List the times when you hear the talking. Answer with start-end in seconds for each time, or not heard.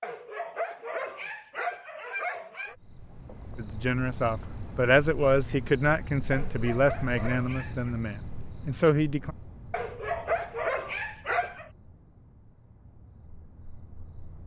3.5-9.3.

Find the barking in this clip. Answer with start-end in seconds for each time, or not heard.
0.0-2.8, 6.3-8.0, 9.7-11.7.